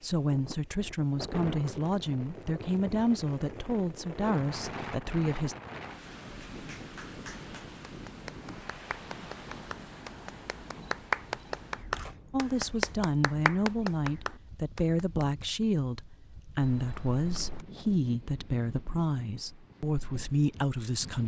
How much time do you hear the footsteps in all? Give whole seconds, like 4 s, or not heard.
not heard.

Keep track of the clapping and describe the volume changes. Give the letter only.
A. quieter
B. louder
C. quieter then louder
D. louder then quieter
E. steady
B.